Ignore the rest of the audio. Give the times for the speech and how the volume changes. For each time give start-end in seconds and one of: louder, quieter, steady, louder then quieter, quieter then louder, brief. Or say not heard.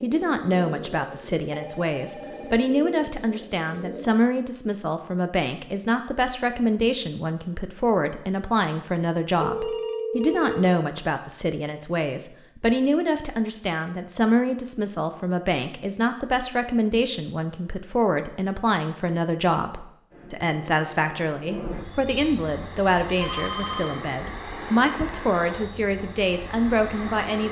0.0-27.4 steady.